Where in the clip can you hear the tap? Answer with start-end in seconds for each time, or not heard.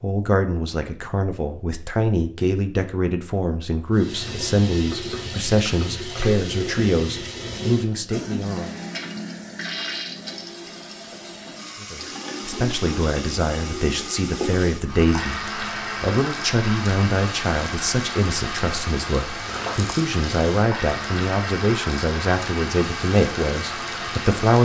3.9-24.5.